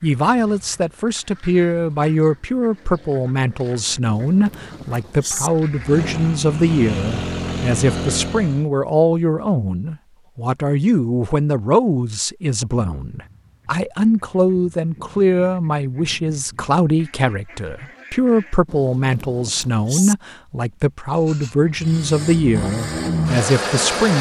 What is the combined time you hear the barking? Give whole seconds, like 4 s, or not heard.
not heard.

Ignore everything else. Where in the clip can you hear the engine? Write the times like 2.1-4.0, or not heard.
5.7-8.7, 21.1-24.1.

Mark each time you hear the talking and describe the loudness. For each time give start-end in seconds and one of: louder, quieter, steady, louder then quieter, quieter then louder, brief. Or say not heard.
0.0-24.1 steady.